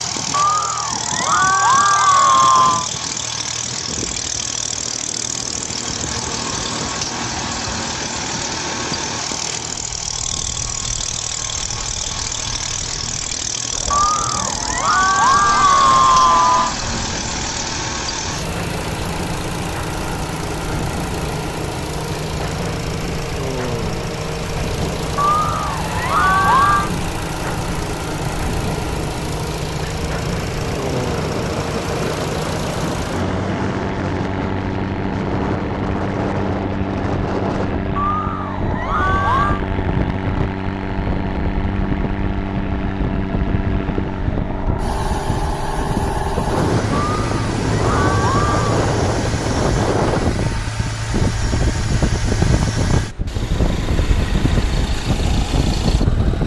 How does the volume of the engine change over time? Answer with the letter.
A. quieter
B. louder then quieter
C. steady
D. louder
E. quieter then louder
C.